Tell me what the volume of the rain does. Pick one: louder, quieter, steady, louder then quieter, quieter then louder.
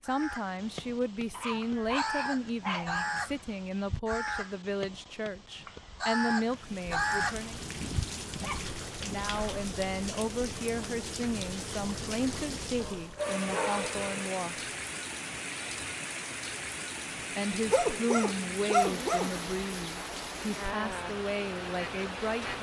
steady.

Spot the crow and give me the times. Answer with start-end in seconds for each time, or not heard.
0.1-8.6.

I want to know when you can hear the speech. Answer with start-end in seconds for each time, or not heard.
0.0-7.6, 9.0-14.7, 17.4-22.5.